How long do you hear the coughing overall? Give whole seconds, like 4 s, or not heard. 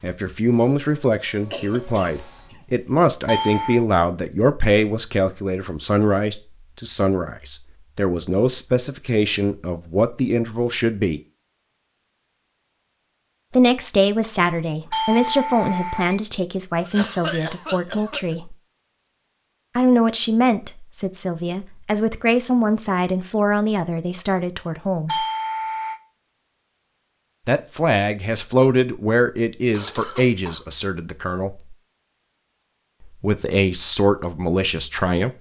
4 s.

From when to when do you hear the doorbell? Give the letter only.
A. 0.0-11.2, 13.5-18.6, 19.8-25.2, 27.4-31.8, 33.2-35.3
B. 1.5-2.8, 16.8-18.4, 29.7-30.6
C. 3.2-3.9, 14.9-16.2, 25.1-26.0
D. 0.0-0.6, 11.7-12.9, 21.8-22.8
C.